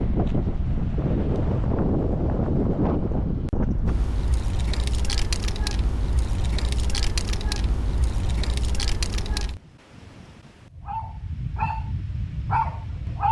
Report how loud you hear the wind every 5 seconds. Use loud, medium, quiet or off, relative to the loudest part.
loud, medium, medium.